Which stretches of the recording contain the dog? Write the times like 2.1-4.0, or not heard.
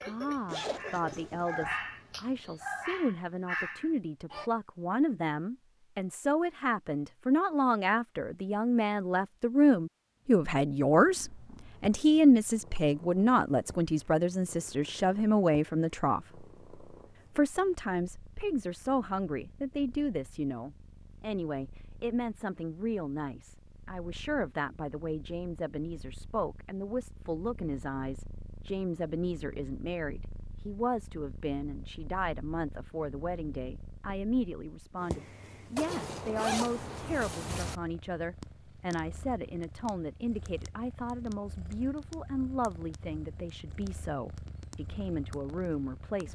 0.0-4.5.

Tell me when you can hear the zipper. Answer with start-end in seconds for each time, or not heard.
0.5-1.8, 35.8-37.8.